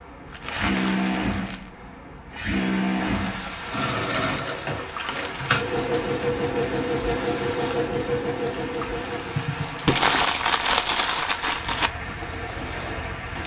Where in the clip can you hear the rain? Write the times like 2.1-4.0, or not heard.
3.0-13.4.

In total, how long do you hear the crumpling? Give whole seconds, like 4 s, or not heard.
4 s.